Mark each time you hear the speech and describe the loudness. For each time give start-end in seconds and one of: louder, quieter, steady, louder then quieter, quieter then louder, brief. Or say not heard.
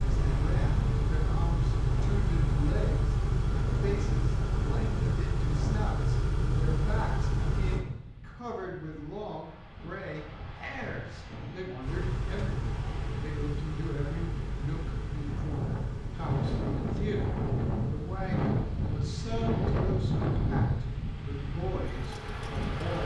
0.0-23.0 steady.